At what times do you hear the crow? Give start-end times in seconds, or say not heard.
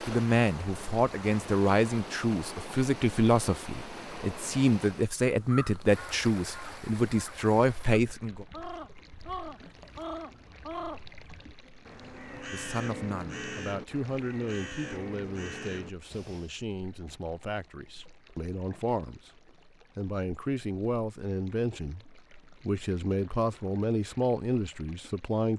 5.4-16.6.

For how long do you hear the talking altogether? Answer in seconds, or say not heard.
22 s.